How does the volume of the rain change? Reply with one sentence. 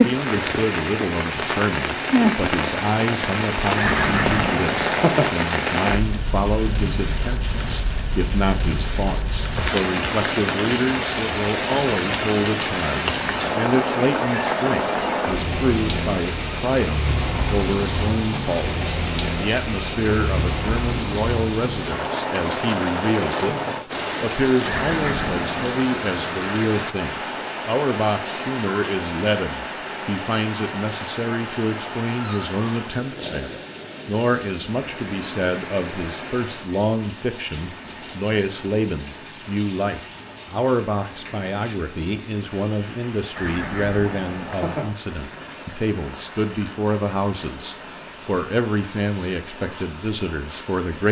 The loudness of the rain goes down.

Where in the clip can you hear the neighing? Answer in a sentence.
You can hear the neighing from 3.8 to 5.3 s, from 24.6 to 26.0 s and from 43.4 to 44.9 s.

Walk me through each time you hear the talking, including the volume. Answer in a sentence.
The talking can be heard from 0.0 to 23.6 s, at a steady volume; and from 24.2 to 51.0 s, at a steady volume.